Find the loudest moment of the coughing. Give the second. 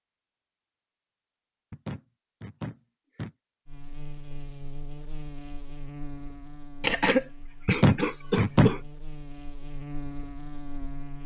7 s.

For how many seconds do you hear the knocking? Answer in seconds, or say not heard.
3 s.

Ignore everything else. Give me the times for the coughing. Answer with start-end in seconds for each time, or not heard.
6.8-8.8.